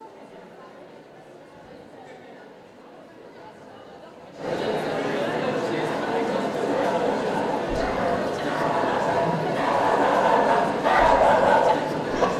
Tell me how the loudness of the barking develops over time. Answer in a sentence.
The loudness of the barking goes up.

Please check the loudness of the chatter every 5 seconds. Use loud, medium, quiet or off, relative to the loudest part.
medium, loud, loud.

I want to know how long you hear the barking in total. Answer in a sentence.
You can hear the barking for 6 seconds altogether.